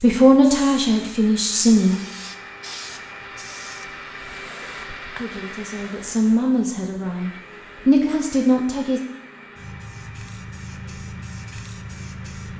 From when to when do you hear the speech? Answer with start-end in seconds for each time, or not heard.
0.0-2.0, 5.2-9.0.